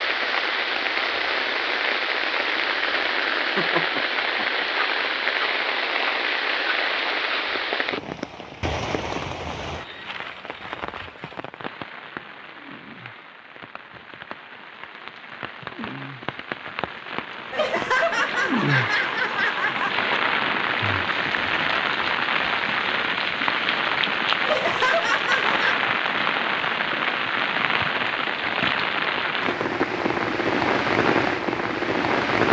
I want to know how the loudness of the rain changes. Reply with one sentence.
The loudness of the rain goes down, then up.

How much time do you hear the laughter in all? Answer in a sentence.
The laughter can be heard for 5 seconds in total.